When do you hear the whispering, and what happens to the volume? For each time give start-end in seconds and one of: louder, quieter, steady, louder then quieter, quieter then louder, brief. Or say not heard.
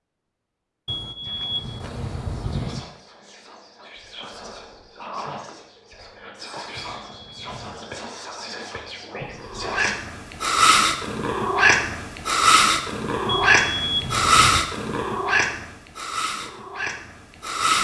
1.2-9.9 louder.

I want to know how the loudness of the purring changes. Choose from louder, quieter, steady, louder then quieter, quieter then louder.
quieter.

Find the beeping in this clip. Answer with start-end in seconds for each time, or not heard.
0.8-2.9, 6.8-7.8, 13.2-14.6.